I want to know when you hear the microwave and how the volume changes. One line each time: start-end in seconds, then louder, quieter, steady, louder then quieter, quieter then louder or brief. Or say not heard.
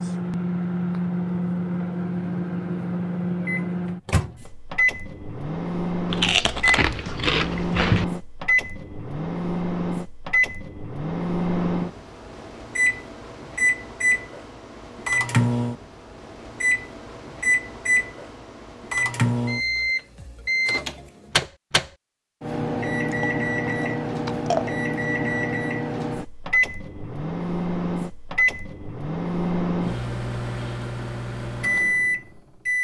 0.0-32.8 steady.